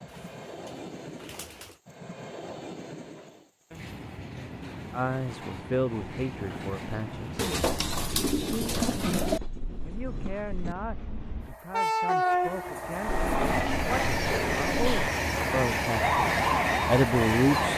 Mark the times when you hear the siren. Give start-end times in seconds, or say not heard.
15.9-17.7.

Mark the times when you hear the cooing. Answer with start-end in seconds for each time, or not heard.
0.1-1.8, 7.3-9.4, 13.1-15.1.